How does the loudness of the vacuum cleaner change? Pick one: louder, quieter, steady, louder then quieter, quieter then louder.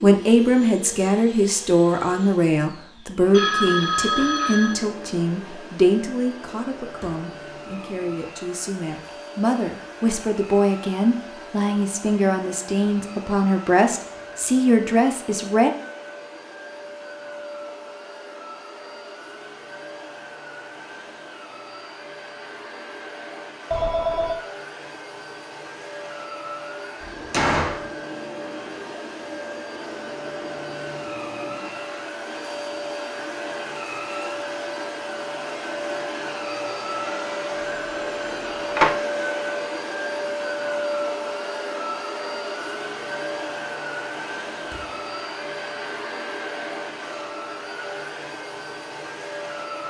louder.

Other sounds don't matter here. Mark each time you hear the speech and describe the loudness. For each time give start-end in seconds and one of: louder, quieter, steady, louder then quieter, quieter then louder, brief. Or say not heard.
0.0-15.7 quieter then louder.